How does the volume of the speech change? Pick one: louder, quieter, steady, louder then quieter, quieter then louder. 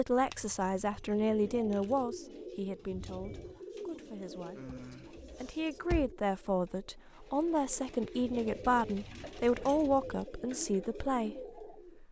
quieter then louder.